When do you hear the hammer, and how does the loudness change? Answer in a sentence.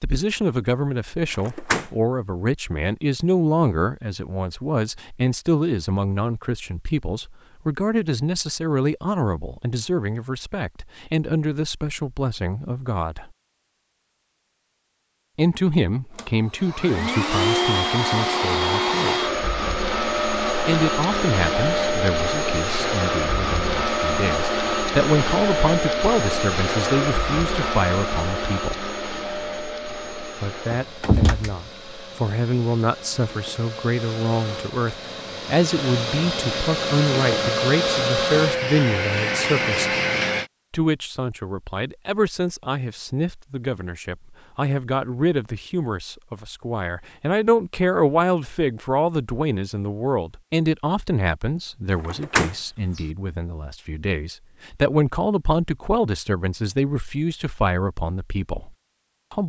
You can't hear the hammer here.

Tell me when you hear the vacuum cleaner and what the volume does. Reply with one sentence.
You can hear the vacuum cleaner from 16.1 to 40.5 s, getting quieter then louder.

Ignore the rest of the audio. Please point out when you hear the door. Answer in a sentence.
The door can be heard from 1.4 to 1.9 s, from 30.7 to 31.6 s and from 52.0 to 53.0 s.